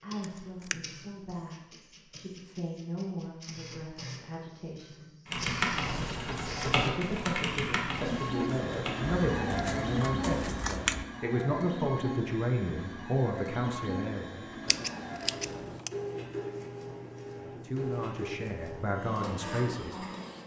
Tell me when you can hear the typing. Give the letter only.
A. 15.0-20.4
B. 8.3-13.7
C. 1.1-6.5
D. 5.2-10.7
D.